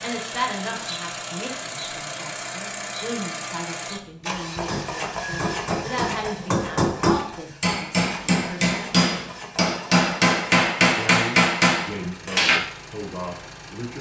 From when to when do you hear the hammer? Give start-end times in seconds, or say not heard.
4.7-12.6.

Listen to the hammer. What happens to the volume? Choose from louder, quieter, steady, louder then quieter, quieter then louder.
louder.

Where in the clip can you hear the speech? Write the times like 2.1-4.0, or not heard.
0.0-8.8, 10.9-13.9.